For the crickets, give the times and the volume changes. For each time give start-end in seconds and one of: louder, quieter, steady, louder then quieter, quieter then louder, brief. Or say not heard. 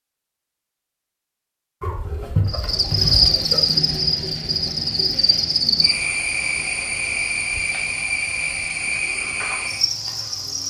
2.5-10.6 quieter.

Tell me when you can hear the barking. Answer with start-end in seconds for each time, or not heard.
1.8-3.6.